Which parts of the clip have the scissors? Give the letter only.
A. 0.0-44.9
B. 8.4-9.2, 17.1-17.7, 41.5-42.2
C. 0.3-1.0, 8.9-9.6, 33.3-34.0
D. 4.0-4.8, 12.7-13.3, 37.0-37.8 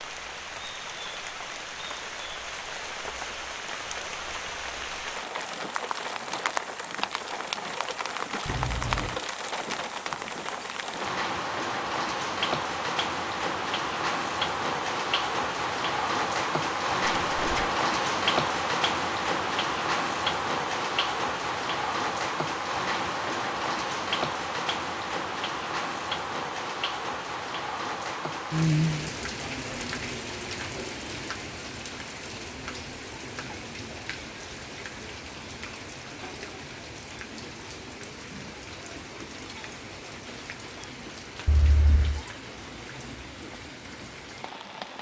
B.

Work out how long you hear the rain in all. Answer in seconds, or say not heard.
45 s.